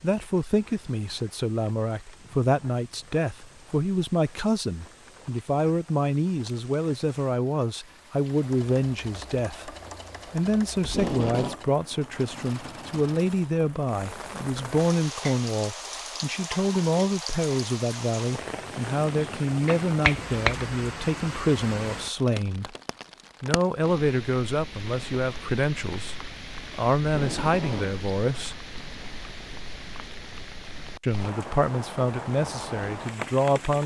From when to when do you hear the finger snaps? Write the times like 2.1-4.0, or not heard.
19.6-20.8.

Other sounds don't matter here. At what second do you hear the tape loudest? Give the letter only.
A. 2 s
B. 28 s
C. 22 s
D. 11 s
D.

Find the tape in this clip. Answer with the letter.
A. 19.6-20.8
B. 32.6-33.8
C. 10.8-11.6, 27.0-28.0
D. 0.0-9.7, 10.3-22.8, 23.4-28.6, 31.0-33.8
C.